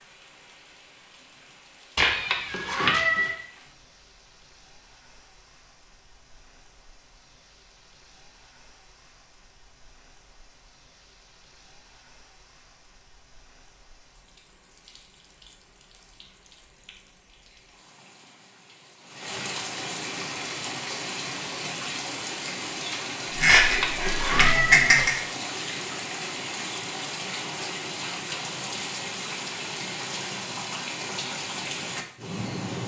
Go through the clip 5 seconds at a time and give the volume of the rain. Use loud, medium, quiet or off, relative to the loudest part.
quiet, quiet, quiet, medium, loud, loud, loud.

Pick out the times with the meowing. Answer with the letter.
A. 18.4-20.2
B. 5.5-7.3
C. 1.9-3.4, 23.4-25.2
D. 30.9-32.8
C.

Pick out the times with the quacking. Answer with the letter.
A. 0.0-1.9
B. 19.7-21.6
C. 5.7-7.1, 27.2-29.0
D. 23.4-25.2
D.